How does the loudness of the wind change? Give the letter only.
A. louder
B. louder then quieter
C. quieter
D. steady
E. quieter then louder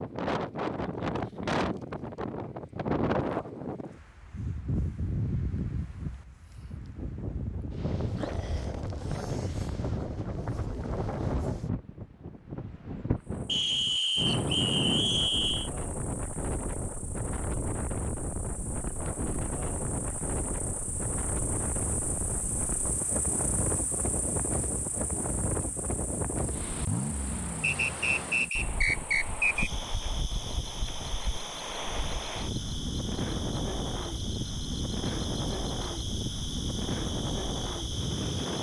D.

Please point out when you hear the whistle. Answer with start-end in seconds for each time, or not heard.
13.4-15.7, 27.6-29.7.